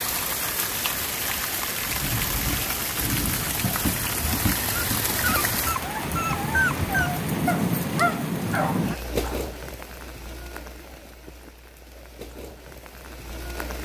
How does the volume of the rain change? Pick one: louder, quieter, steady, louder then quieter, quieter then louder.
quieter.